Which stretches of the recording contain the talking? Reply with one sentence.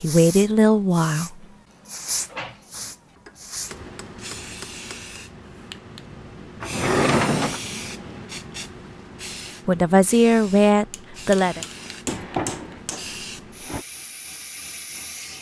The talking can be heard from 0.0 to 1.4 s and from 9.7 to 11.6 s.